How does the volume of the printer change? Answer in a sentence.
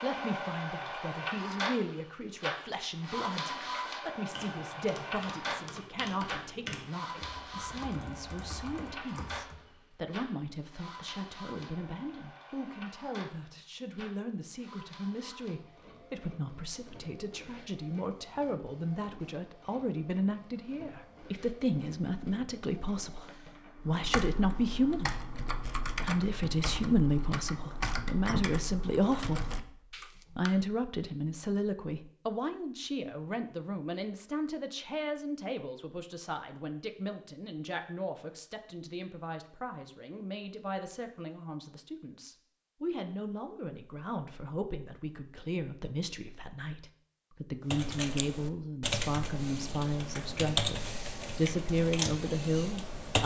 The volume of the printer goes down.